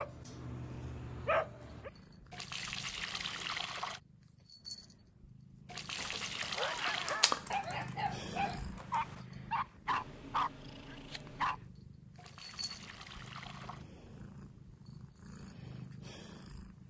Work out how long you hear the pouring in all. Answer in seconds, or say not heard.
5 s.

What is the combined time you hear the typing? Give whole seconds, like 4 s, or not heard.
3 s.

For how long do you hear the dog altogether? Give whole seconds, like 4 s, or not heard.
7 s.